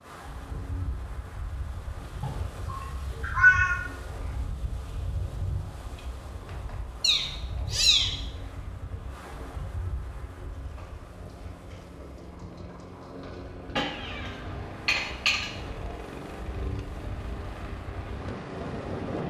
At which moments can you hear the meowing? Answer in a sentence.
The meowing can be heard from 2.2 to 3.8 s, from 7.0 to 8.2 s and from 13.8 to 15.5 s.